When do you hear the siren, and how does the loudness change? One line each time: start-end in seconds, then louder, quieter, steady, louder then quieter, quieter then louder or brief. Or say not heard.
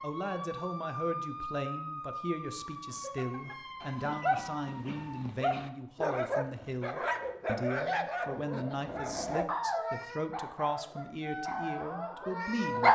0.0-5.3 quieter
11.2-12.7 brief.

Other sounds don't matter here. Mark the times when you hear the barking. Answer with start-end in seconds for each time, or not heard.
2.6-12.9.